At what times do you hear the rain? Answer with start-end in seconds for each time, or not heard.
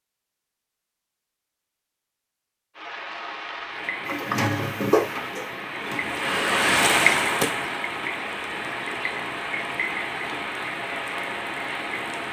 2.8-12.2.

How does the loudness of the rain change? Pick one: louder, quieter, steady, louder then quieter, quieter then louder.
louder then quieter.